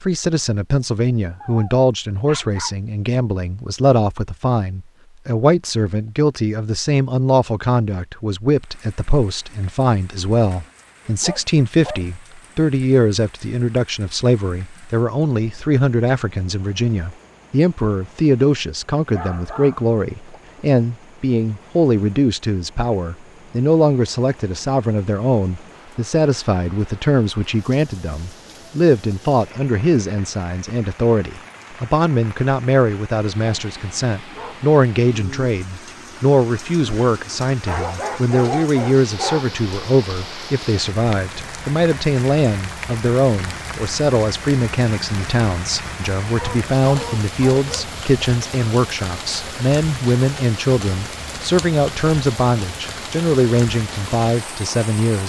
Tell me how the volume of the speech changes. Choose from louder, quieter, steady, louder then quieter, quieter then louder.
steady.